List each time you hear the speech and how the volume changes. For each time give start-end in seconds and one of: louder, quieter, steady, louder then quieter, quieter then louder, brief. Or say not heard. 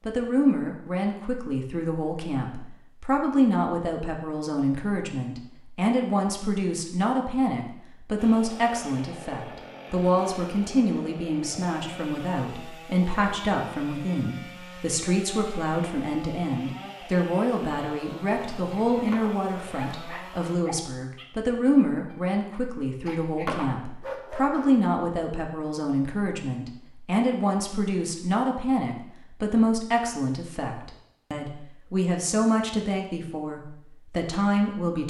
0.1-35.0 steady.